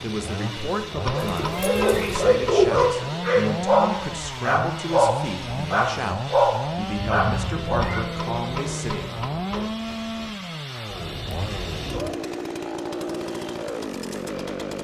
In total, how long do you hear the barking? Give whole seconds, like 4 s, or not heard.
7 s.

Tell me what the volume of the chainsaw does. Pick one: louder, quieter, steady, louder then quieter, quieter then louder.
steady.